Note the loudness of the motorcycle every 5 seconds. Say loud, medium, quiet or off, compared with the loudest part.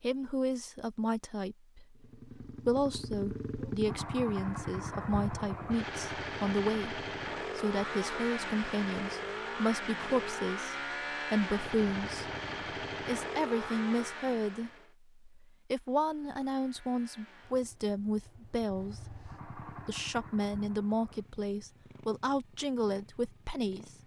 loud, loud, loud, quiet, quiet.